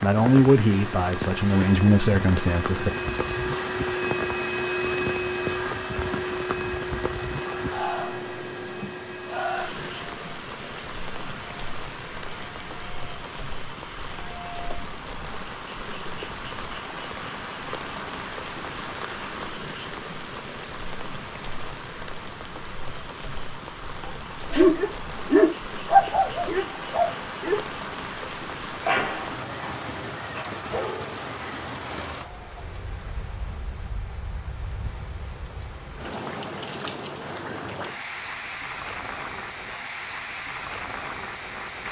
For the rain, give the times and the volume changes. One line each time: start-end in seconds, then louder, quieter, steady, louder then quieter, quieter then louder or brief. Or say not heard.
0.0-41.8 steady.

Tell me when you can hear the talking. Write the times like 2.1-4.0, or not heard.
0.0-2.9.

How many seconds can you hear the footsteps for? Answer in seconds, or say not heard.
not heard.